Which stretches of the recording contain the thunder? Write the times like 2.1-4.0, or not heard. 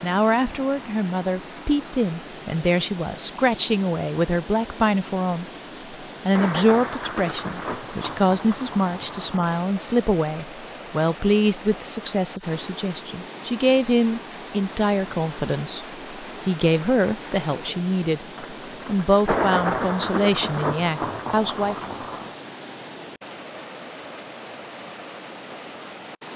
6.3-9.6, 18.4-22.4.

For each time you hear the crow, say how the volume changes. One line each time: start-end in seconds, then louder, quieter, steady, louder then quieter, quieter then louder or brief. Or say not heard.
not heard.